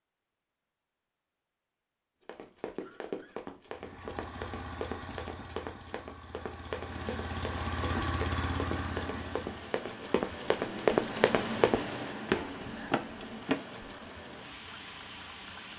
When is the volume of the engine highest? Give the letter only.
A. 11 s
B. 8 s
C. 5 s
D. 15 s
B.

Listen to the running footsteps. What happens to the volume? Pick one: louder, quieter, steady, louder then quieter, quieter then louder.
louder.